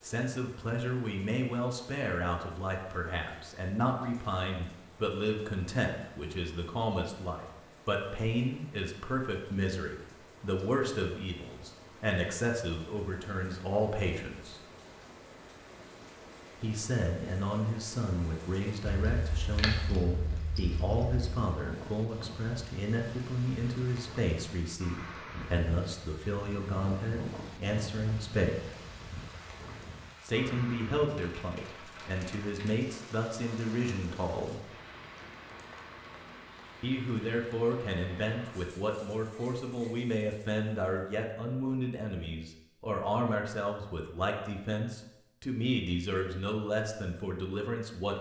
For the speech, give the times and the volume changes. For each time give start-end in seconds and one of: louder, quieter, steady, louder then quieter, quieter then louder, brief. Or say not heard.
0.0-14.6 steady
16.6-28.7 steady
30.2-34.7 quieter then louder
36.8-48.1 steady.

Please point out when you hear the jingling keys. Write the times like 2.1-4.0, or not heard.
18.9-21.2.